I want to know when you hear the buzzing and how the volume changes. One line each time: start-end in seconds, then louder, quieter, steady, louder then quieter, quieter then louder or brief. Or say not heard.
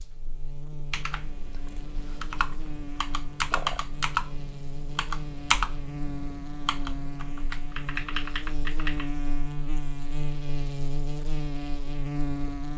0.0-12.7 louder.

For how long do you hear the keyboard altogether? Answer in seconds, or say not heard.
8 s.